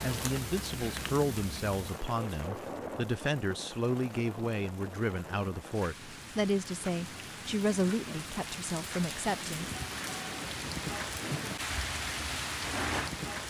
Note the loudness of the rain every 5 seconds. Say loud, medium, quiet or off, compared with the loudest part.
medium, medium, loud.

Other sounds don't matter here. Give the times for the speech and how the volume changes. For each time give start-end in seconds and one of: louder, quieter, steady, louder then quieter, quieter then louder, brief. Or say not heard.
0.0-10.0 steady.